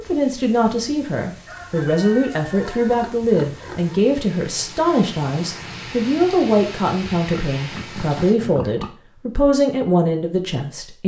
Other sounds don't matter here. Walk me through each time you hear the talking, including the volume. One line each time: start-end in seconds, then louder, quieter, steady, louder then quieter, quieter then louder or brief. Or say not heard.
0.0-11.0 steady.